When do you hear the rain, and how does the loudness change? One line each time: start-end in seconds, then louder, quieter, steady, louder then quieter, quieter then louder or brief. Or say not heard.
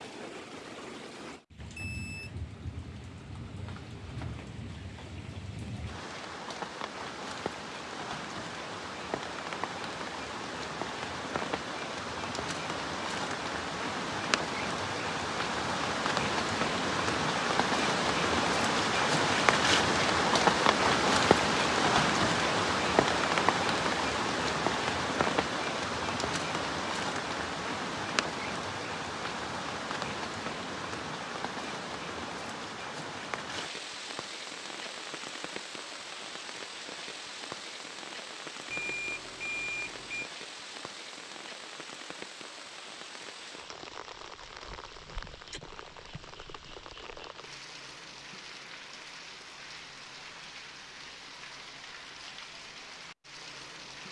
0.0-54.0 louder then quieter.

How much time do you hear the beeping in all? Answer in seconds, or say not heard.
2 s.